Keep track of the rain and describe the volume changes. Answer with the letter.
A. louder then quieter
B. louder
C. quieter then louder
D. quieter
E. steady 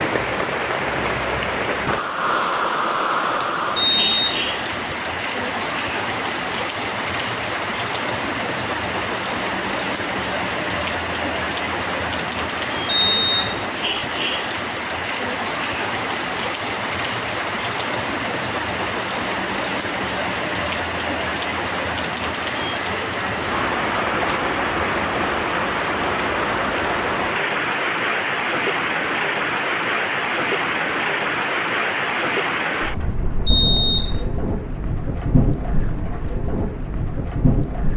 E.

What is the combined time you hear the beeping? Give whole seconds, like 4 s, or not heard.
3 s.